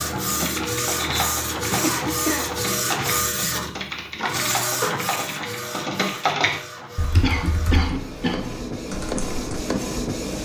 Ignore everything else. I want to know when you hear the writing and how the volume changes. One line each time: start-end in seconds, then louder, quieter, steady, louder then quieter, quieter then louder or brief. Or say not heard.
not heard.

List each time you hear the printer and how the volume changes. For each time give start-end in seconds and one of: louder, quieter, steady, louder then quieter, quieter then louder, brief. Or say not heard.
0.0-10.4 quieter then louder.